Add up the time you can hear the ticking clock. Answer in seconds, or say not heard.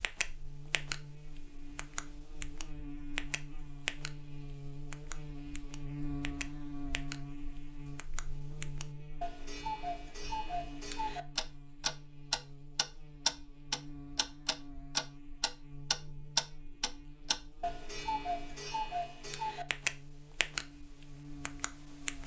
20 s.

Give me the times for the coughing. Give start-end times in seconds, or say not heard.
not heard.